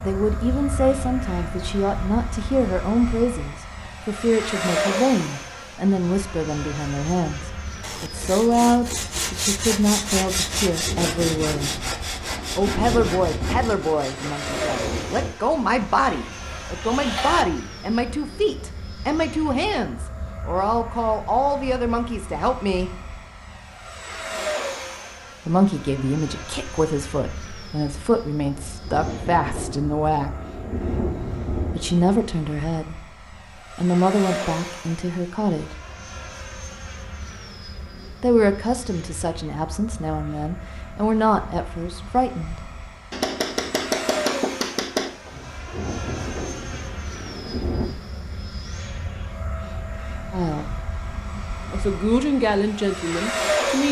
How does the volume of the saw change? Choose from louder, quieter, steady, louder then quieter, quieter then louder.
quieter.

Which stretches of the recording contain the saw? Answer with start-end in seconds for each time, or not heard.
7.8-17.4.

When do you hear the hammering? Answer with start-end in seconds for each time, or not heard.
43.1-45.1.